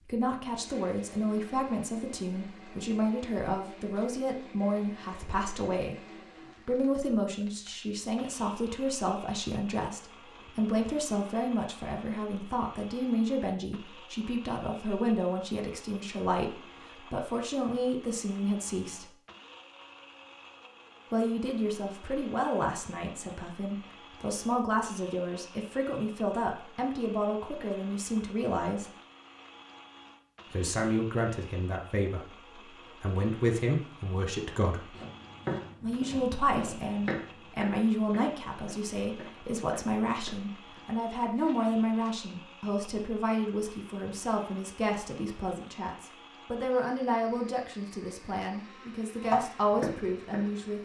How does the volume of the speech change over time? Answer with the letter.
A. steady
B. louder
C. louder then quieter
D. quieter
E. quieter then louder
A.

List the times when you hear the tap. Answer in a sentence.
The tap can't be heard in this clip.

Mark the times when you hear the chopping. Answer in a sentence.
The chopping can be heard from 35.0 to 42.1 s and from 49.2 to 50.8 s.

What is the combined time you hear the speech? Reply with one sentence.
The speech can be heard for 46 seconds in total.